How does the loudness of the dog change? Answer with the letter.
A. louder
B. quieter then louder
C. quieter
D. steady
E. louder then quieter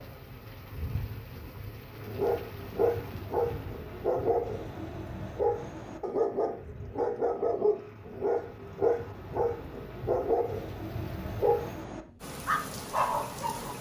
D.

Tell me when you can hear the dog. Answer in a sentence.
The dog can be heard from 2.0 to 13.7 s.